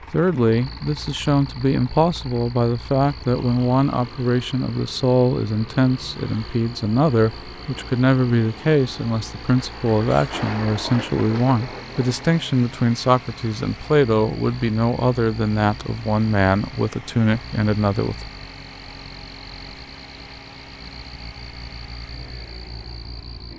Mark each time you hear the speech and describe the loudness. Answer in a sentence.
You can hear the speech from 0.0 to 18.2 s, at a steady volume.